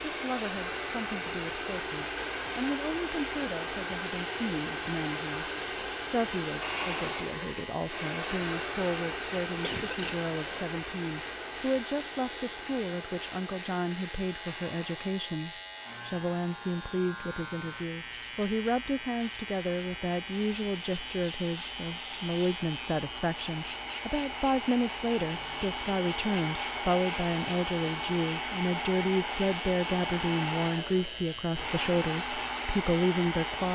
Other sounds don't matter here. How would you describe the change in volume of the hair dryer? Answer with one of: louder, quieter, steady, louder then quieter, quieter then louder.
quieter then louder.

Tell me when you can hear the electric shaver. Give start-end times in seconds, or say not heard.
0.0-33.6.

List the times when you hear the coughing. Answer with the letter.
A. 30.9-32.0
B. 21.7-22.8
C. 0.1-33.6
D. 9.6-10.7
D.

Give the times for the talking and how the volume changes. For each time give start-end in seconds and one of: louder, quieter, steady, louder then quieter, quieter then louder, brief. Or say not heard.
0.1-33.6 louder.